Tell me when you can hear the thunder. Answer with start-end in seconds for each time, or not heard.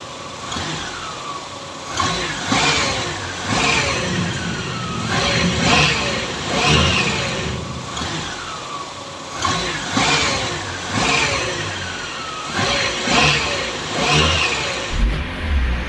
3.8-8.2.